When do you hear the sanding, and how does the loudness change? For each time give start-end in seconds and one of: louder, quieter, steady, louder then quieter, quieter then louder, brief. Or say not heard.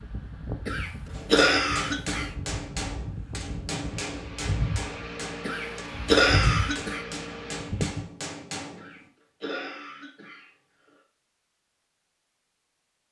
not heard.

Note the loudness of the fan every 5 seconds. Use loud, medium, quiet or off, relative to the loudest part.
medium, loud, off.